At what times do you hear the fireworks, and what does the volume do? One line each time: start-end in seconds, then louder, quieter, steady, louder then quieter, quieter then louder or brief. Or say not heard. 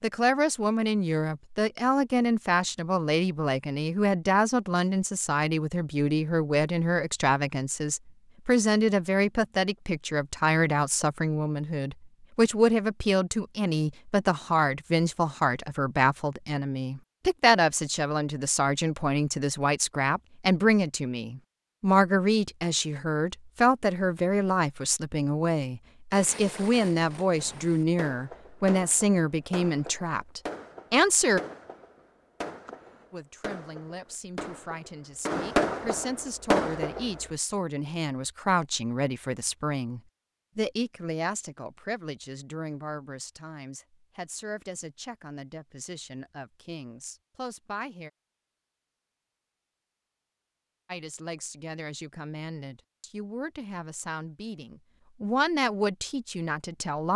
26.1-37.2 louder.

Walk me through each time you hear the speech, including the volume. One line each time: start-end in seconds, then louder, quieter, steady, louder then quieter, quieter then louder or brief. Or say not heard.
0.0-31.4 steady
33.1-48.1 louder then quieter
50.9-57.1 louder.